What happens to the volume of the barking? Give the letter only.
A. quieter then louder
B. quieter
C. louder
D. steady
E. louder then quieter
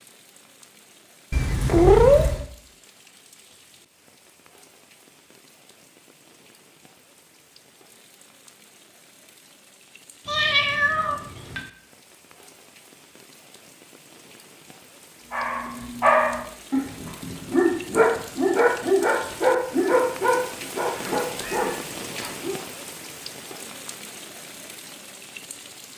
B.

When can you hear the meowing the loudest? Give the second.
2 s.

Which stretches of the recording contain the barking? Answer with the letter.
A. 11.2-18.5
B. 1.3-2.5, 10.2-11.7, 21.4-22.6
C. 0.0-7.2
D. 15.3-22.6
D.